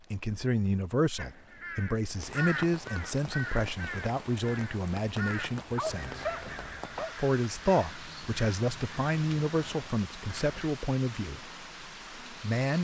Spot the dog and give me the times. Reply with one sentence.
You can hear the dog from 5.5 to 7.2 s.